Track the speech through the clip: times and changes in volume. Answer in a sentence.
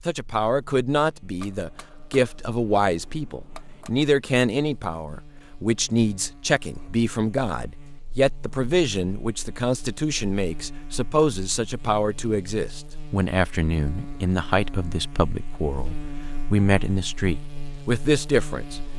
You can hear the speech from 0.1 to 18.8 s, at a steady volume.